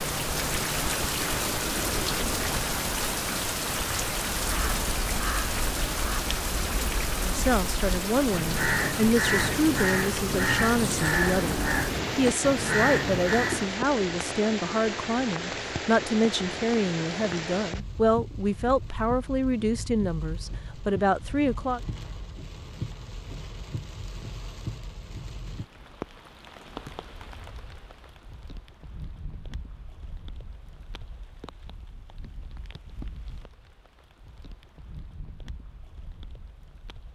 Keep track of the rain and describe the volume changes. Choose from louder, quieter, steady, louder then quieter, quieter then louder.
quieter.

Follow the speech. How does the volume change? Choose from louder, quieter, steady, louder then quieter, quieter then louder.
steady.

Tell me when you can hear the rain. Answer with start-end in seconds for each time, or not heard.
0.0-37.0.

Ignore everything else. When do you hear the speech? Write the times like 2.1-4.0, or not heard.
7.2-21.8.